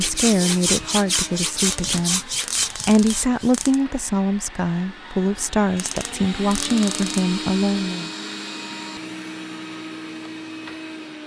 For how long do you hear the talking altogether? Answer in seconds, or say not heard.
8 s.